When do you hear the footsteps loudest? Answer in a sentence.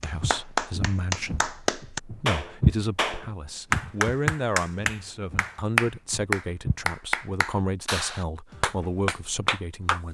The loudest moment of the footsteps is at 3 seconds.